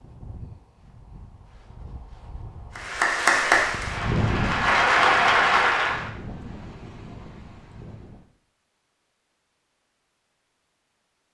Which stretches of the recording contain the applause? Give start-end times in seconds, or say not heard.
2.8-6.1.